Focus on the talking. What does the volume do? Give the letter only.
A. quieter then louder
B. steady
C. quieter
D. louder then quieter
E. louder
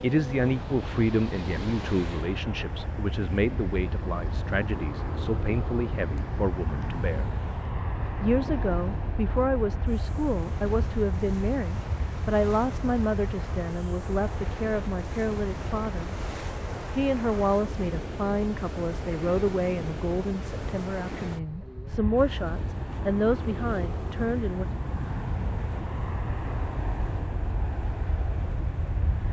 B.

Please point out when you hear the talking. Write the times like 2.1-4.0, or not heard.
0.0-7.2, 8.2-16.1, 16.9-24.6.